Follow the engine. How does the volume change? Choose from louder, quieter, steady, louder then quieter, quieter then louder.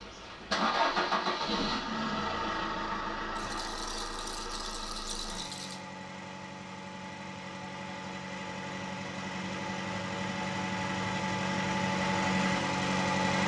quieter then louder.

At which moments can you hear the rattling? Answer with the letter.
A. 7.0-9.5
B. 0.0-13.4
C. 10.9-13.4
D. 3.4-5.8
D.